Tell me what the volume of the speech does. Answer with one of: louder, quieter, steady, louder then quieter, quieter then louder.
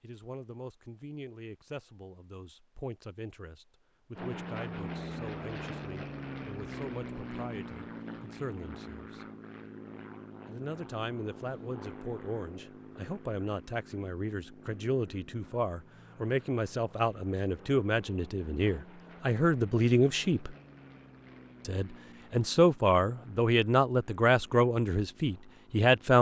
louder.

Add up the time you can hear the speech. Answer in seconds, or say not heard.
24 s.